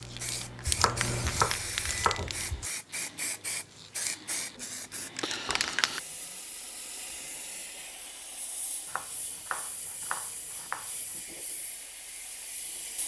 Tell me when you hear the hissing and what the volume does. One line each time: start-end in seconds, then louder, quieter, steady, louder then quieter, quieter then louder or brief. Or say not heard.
0.0-13.0 quieter.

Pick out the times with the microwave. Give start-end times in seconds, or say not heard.
0.0-2.1.